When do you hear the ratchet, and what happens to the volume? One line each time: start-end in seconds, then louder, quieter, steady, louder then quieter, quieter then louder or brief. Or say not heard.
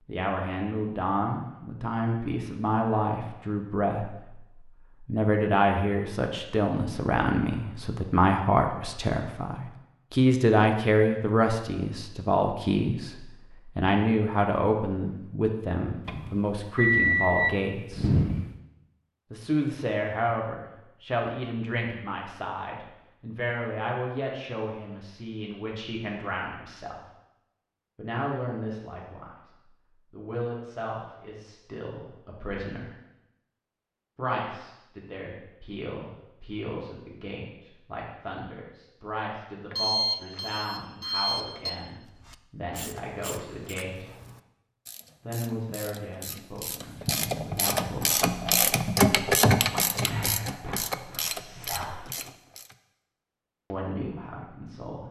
42.1-52.8 louder then quieter.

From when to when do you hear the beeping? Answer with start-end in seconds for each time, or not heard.
16.1-18.4, 39.7-41.7.